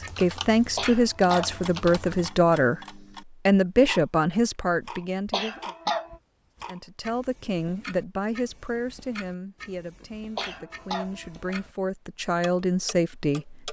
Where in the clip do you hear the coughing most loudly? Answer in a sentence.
The loudest moment of the coughing is at 6 seconds.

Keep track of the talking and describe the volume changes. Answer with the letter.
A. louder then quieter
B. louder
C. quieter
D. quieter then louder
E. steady
D.